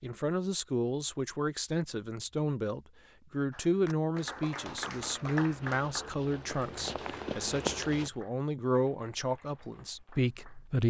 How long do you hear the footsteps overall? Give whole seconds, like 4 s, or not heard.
4 s.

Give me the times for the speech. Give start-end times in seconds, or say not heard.
0.0-10.8.